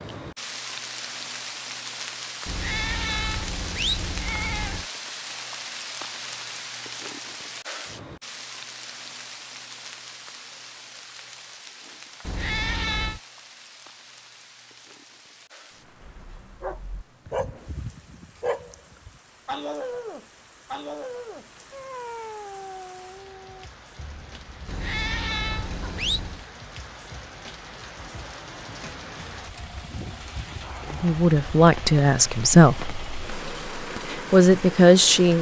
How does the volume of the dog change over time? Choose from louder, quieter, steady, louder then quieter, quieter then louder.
quieter.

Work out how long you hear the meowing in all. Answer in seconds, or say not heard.
5 s.